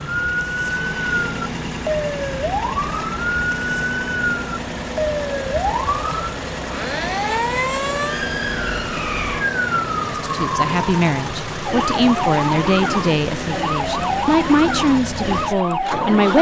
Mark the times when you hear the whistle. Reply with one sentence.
The whistle can't be heard in this clip.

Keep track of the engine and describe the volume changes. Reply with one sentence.
The loudness of the engine stays about the same.